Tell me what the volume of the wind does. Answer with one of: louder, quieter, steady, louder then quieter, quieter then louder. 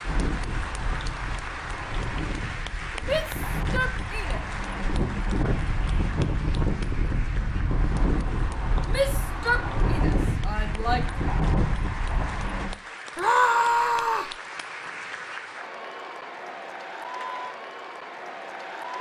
louder.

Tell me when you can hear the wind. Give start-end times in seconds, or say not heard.
0.0-12.8.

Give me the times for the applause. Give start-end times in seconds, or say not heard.
0.0-18.9.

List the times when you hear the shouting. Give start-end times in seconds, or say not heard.
3.0-4.4, 8.8-11.1, 13.2-14.3.